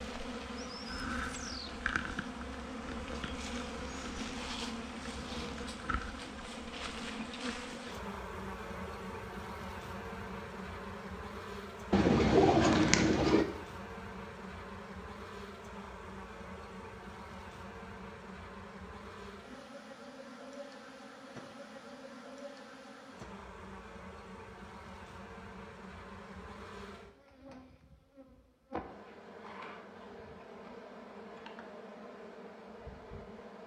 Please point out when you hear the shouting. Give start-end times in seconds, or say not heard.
not heard.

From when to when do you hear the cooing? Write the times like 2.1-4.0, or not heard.
11.9-13.4.